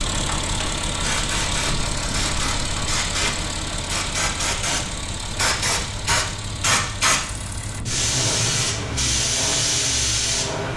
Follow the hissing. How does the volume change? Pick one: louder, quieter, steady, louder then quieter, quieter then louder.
louder.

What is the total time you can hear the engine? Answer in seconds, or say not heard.
11 s.